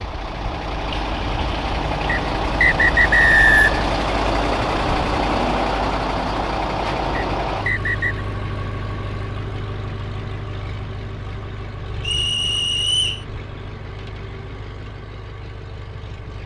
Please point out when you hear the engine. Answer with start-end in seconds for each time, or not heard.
0.0-16.4.